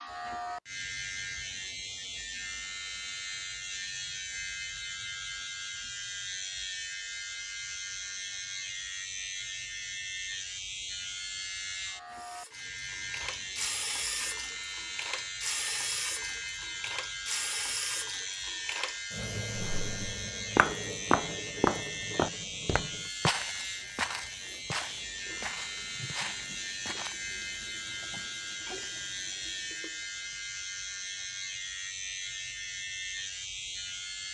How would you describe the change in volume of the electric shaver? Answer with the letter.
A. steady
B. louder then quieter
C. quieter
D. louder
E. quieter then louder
A.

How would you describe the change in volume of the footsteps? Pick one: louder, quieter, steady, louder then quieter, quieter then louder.
quieter.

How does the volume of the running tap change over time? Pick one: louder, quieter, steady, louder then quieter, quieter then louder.
quieter.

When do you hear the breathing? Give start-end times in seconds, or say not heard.
not heard.